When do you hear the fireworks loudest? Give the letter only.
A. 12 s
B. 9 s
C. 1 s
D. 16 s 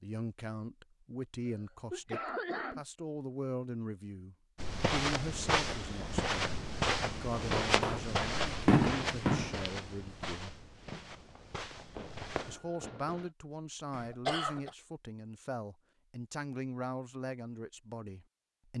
B.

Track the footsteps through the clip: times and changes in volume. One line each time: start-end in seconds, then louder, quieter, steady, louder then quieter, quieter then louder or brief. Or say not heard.
4.5-12.6 quieter.